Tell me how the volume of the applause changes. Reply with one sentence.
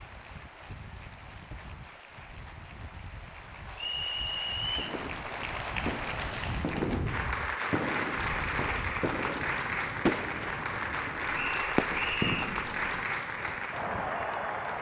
The loudness of the applause goes up.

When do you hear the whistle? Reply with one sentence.
The whistle can be heard from 3.8 to 5.0 s and from 11.3 to 12.6 s.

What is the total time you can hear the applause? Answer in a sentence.
You can hear the applause for 15 seconds altogether.